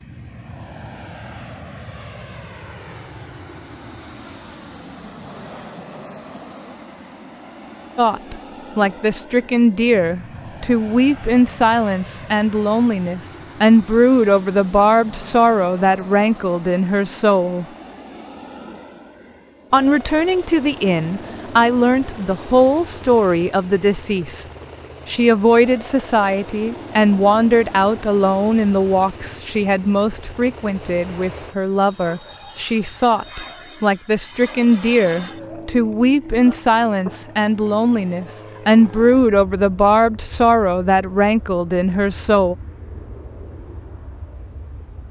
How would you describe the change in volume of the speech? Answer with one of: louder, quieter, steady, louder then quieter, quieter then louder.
steady.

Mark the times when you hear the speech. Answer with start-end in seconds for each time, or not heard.
8.0-17.6, 19.7-24.4, 25.1-42.5.